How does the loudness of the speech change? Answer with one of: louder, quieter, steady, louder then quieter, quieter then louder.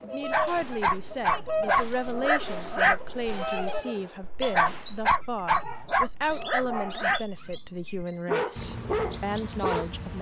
steady.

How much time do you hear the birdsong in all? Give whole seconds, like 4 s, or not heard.
10 s.